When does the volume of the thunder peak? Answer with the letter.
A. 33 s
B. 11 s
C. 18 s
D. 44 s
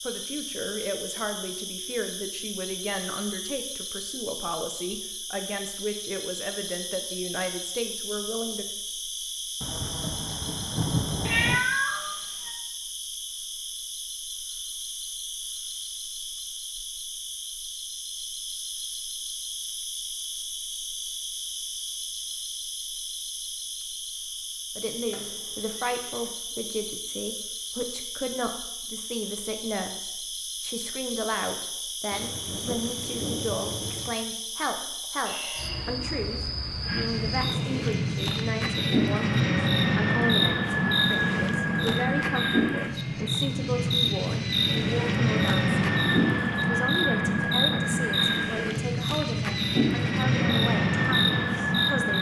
B.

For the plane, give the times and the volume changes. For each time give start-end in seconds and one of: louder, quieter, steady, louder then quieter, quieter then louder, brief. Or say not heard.
36.8-52.1 steady.